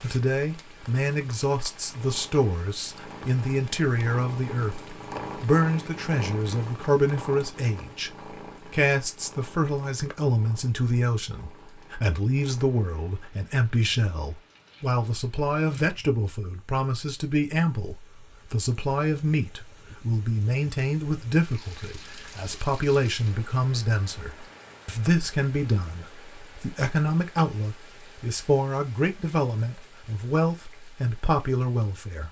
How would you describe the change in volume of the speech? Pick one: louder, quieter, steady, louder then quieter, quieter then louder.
steady.